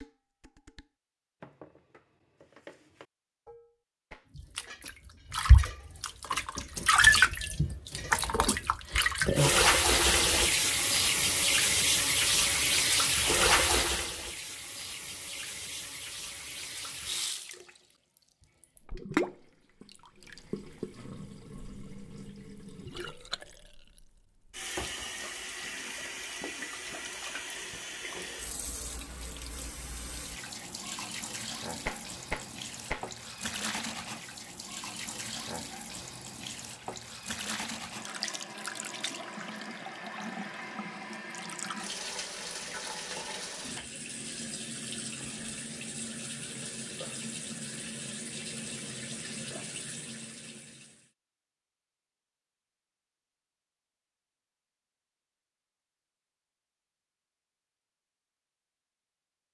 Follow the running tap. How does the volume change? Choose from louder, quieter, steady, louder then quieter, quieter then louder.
quieter.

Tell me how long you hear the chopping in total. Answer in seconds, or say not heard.
not heard.